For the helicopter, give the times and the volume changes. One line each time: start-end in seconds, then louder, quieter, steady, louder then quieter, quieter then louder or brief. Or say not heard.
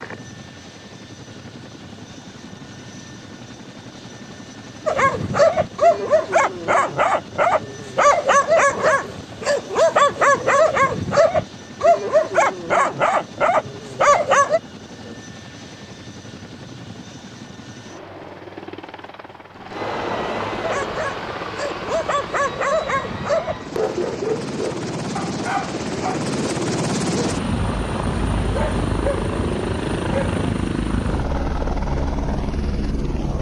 0.0-33.3 louder.